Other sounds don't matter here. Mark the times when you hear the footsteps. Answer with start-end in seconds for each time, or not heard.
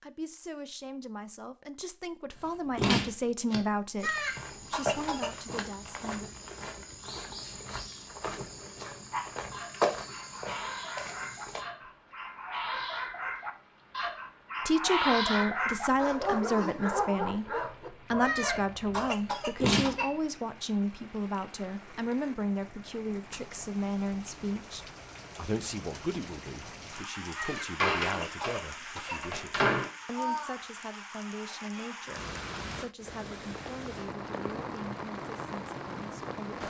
4.0-11.7.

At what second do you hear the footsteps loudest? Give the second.
10 s.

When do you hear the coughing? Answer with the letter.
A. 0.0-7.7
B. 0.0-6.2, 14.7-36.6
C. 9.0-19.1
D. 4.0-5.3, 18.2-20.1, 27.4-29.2
D.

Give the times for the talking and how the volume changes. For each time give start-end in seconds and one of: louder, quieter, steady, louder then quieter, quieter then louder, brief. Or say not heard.
0.0-6.2 louder then quieter
14.7-36.6 quieter.